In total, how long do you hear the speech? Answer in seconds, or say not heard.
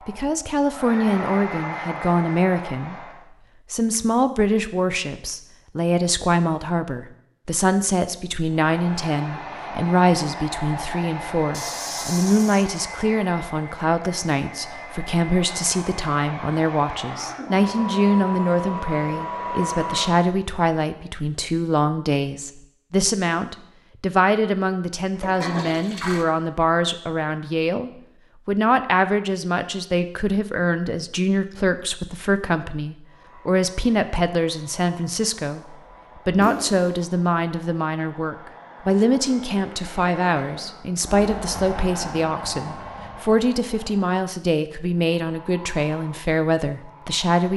47 s.